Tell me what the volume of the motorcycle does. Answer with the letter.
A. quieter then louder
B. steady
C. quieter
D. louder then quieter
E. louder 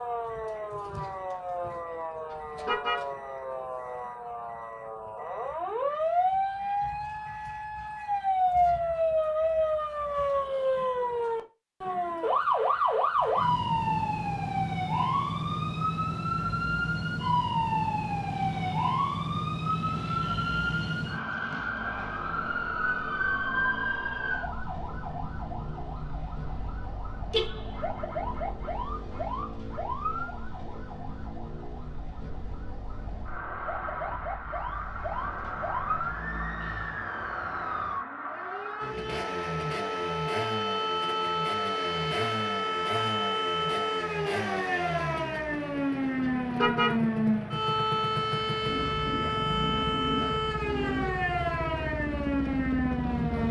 E.